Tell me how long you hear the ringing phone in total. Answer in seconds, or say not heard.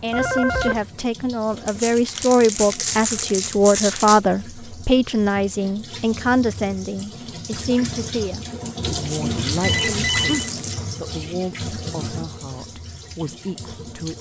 2 s.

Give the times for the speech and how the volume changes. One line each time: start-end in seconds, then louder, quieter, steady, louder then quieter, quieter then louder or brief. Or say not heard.
0.0-14.1 quieter.